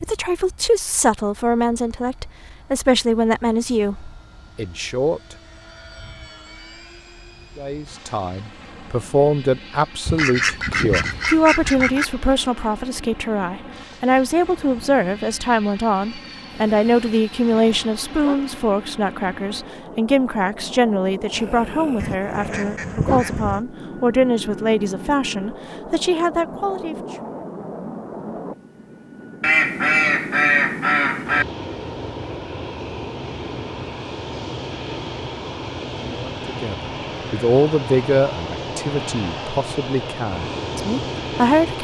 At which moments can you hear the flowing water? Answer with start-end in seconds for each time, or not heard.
not heard.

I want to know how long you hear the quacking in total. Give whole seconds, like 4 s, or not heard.
6 s.